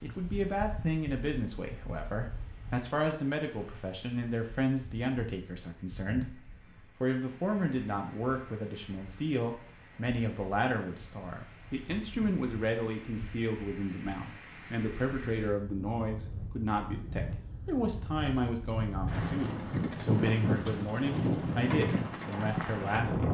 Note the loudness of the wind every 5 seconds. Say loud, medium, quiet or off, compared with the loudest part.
quiet, quiet, quiet, medium, loud.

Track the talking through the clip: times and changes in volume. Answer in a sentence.
You can hear the talking from 0.0 to 23.2 s, at a steady volume.